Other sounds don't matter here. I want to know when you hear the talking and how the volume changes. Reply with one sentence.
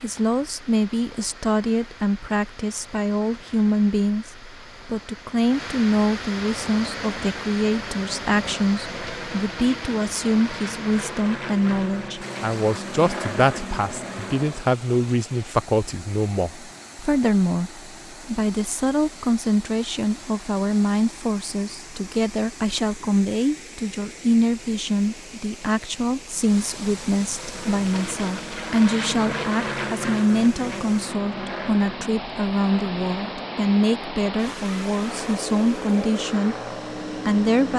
The talking can be heard from 0.0 to 36.5 s, at a steady volume; and briefly from 37.2 to 37.7 s.